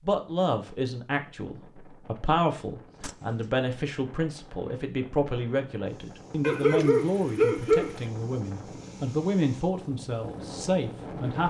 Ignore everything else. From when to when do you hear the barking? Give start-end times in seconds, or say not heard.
6.4-8.0.